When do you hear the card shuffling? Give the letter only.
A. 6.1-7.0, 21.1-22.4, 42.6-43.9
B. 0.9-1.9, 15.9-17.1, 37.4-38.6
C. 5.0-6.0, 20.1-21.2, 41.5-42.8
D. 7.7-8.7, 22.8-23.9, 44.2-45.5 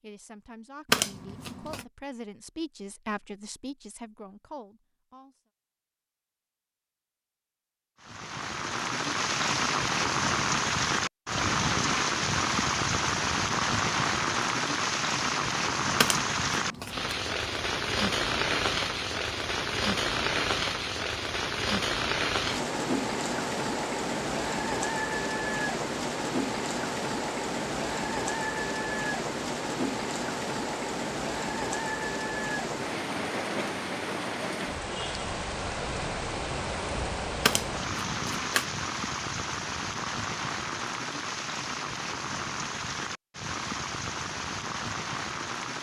B.